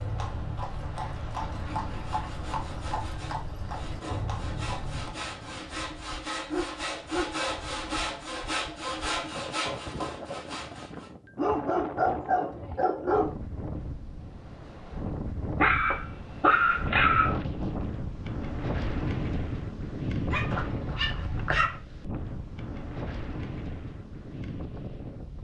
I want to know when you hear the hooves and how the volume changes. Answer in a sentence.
You can hear the hooves from 0.0 to 5.2 s, at a steady volume.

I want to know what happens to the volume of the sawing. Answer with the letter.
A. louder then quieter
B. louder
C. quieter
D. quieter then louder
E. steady
B.